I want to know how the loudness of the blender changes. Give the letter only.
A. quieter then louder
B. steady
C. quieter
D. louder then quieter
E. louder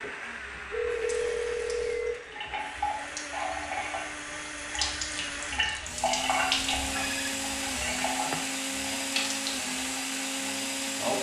E.